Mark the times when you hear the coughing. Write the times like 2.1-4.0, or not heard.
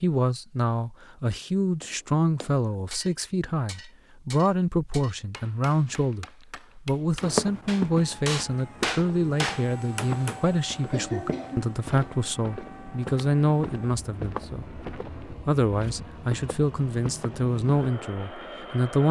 10.9-12.7.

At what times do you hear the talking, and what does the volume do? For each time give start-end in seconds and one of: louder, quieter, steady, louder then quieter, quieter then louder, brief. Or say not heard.
0.0-19.0 steady.